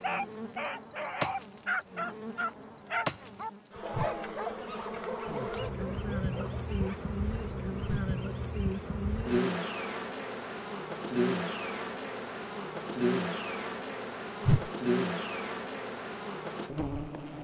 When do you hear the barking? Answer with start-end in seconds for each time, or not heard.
0.0-7.1.